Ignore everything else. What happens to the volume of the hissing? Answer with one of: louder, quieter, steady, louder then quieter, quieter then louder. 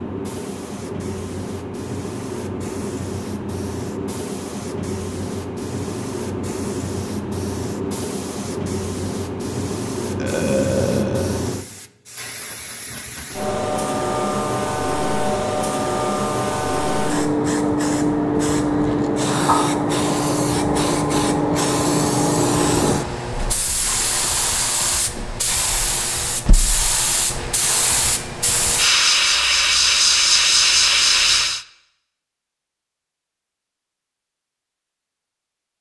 louder.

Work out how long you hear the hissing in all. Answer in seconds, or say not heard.
32 s.